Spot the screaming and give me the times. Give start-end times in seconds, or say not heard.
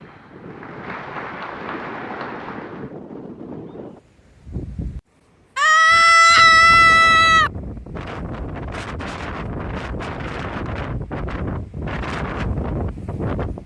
5.5-7.5.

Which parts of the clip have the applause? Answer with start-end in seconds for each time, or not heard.
0.0-3.0.